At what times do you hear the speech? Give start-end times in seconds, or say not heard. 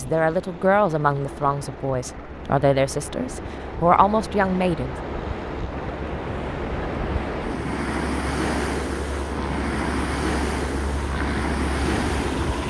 0.0-5.0.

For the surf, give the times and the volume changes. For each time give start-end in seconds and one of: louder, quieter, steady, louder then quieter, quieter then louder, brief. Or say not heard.
0.0-12.6 louder.